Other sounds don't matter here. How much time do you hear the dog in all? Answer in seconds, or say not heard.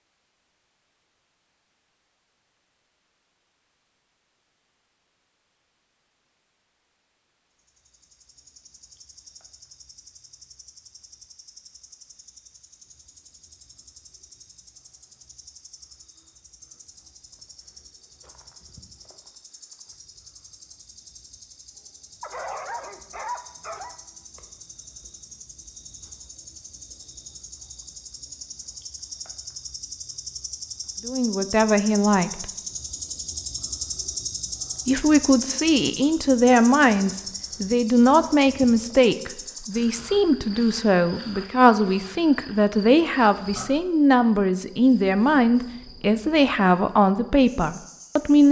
2 s.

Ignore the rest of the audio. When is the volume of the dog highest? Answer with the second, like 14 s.
23 s.